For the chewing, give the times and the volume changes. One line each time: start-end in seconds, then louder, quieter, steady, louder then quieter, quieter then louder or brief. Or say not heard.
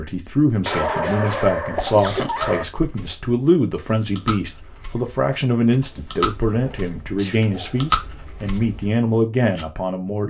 2.2-9.7 louder then quieter.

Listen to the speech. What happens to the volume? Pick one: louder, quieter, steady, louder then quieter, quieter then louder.
steady.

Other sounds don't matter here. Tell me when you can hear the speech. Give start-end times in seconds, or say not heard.
0.0-10.2.